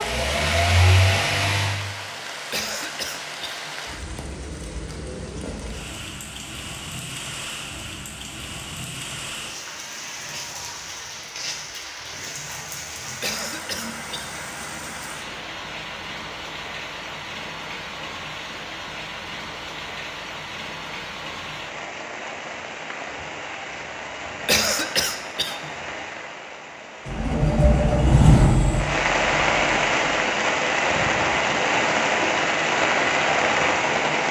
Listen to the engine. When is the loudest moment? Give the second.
28 s.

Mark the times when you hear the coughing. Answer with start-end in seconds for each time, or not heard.
2.5-3.7, 13.2-14.4, 24.4-25.7.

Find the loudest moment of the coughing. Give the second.
25 s.